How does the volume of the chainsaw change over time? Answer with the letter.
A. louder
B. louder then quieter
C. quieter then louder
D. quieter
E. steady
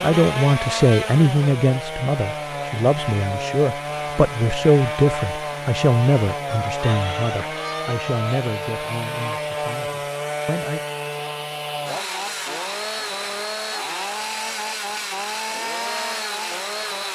E.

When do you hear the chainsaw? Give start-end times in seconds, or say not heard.
0.0-17.1.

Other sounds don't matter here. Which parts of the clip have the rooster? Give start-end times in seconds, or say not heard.
6.7-8.4.